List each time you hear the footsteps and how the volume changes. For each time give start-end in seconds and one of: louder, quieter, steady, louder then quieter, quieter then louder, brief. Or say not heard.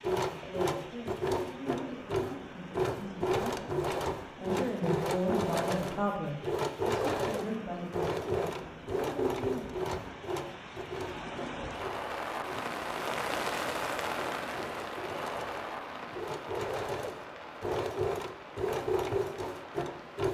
not heard.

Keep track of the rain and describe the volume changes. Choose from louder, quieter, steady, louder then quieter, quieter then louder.
louder then quieter.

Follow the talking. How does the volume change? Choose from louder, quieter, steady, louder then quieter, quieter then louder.
louder then quieter.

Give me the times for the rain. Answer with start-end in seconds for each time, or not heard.
0.0-20.2.